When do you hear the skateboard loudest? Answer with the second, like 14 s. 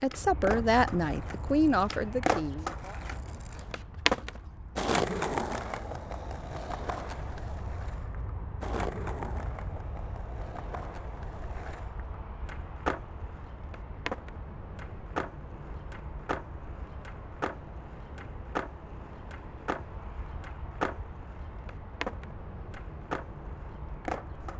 5 s.